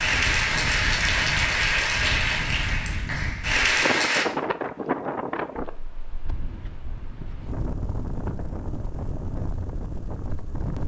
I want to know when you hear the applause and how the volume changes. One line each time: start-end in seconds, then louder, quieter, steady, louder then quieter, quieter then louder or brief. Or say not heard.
0.0-4.2 quieter then louder.